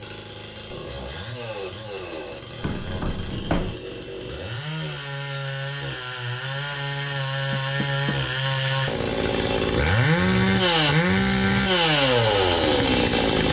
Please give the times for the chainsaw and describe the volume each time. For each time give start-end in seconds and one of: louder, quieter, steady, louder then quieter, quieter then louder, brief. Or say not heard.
0.0-13.4 louder.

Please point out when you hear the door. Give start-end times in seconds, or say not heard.
2.6-3.8, 7.5-8.2.